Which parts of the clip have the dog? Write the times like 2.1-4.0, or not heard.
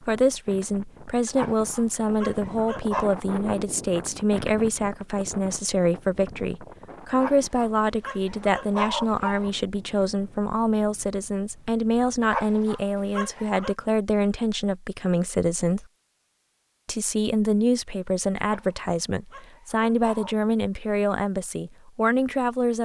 1.2-3.1, 7.1-9.5, 12.2-13.8, 18.4-20.4.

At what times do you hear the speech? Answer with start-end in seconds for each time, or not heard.
0.0-15.8, 16.9-22.8.